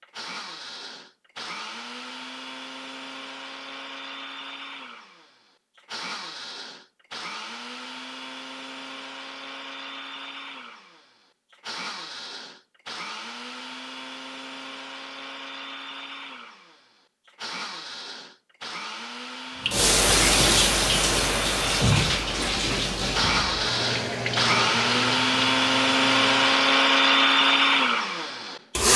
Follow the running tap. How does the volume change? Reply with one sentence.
The volume of the running tap goes down.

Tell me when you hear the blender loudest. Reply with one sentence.
The loudest moment of the blender is at 27 seconds.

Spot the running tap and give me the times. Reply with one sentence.
You can hear the running tap from 19.6 to 26.6 s.